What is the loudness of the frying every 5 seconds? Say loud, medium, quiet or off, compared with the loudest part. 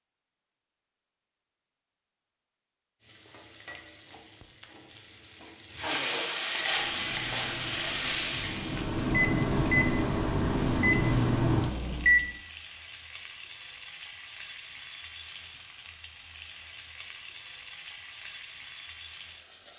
quiet, loud, quiet, quiet.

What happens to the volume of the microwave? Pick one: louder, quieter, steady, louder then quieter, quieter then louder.
louder.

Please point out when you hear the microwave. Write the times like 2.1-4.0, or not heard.
6.5-12.3.